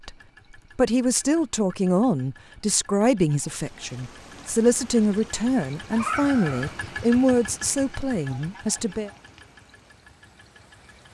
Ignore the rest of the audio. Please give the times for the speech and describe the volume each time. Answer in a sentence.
You can hear the speech from 0.8 to 9.1 s, at a steady volume.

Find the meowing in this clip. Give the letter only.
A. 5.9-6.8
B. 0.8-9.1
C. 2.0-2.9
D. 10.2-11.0
A.